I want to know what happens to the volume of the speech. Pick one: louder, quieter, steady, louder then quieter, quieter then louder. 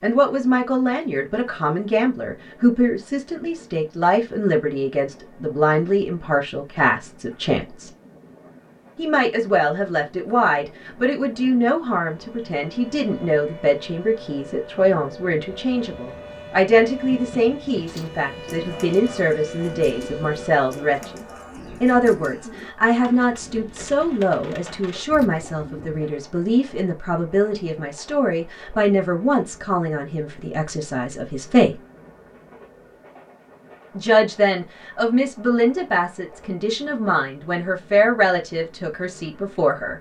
steady.